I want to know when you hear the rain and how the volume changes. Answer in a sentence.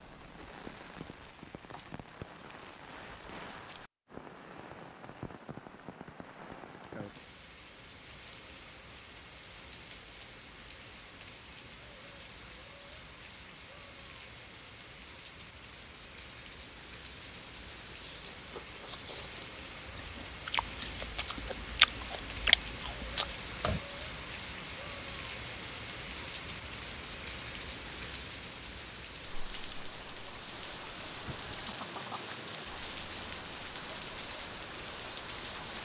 You can hear the rain from 0.0 to 35.8 s, getting louder.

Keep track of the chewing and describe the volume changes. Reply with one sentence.
The volume of the chewing goes down, then up.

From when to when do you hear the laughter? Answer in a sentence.
You can hear the laughter from 31.2 to 32.4 s.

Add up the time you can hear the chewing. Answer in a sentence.
The chewing can be heard for 6 seconds in total.